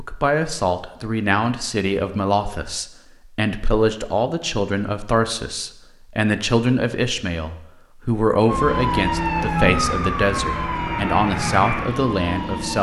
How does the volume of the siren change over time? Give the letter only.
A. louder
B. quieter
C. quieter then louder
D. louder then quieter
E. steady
B.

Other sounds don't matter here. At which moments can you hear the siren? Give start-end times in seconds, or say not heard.
8.4-12.7.